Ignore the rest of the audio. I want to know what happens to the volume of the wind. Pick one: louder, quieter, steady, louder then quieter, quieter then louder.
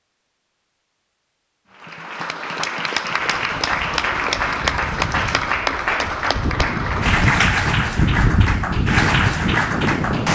louder.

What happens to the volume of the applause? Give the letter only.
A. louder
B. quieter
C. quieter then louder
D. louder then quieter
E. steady
E.